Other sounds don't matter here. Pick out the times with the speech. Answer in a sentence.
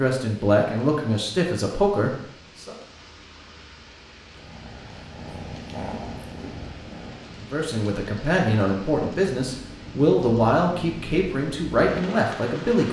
You can hear the speech from 0.0 to 2.8 s and from 7.4 to 12.8 s.